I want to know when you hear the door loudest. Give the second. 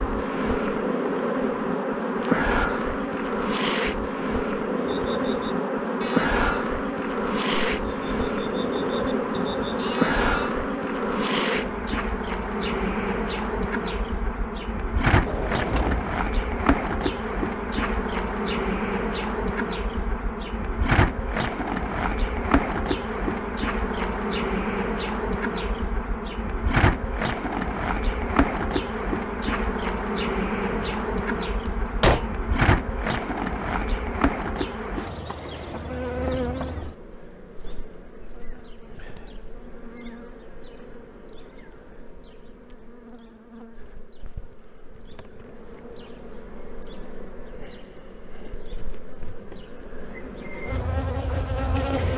32 s.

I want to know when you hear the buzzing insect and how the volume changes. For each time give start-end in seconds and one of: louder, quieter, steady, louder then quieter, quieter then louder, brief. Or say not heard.
0.0-52.1 quieter.